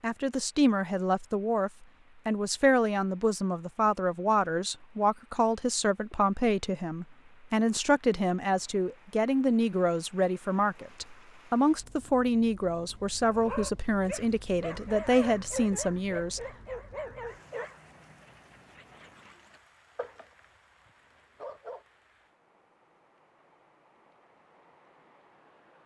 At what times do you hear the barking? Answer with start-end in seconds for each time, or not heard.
13.2-21.9.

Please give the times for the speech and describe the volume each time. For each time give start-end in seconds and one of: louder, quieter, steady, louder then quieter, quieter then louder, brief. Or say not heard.
0.0-16.4 steady.